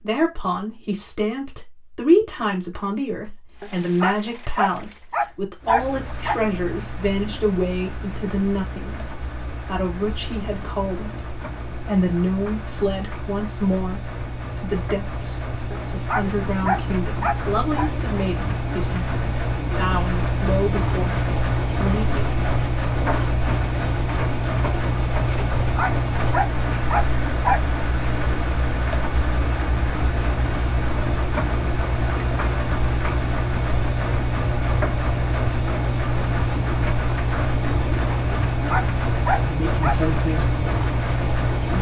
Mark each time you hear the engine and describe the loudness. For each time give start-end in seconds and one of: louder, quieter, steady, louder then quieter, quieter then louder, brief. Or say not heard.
3.5-41.7 louder.